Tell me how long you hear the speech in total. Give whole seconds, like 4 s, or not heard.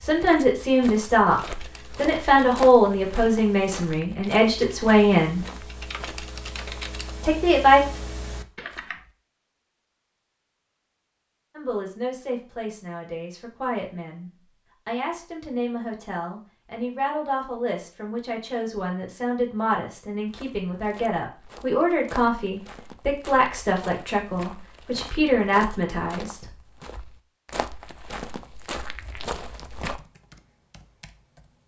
21 s.